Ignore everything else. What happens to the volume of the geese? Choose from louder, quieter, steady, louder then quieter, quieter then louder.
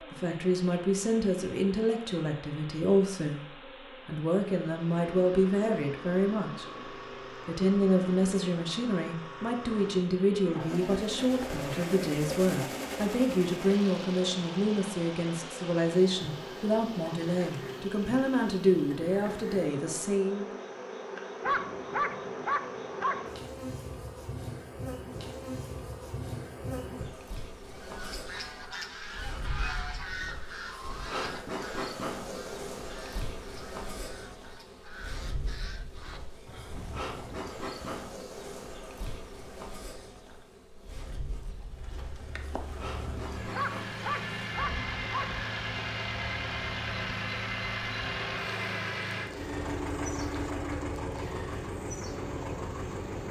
quieter.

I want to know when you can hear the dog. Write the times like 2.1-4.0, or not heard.
21.4-23.3, 43.5-45.4.